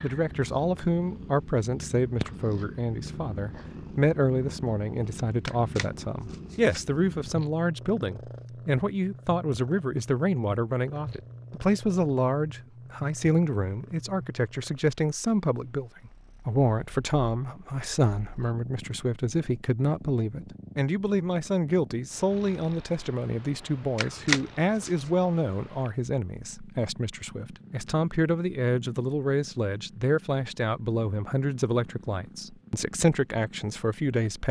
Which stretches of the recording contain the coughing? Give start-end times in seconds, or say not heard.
not heard.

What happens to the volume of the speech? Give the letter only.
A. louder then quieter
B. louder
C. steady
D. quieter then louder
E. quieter
C.